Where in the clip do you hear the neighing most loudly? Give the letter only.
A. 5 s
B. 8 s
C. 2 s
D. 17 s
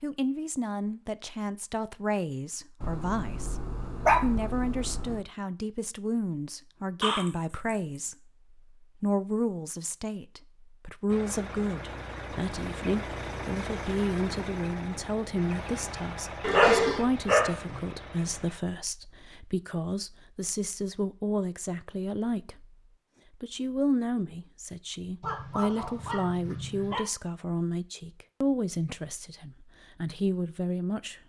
D.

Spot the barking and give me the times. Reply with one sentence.
You can hear the barking from 2.8 to 5.2 s, from 16.5 to 17.8 s and from 25.2 to 27.0 s.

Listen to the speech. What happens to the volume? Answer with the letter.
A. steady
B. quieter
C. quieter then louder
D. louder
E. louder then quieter
A.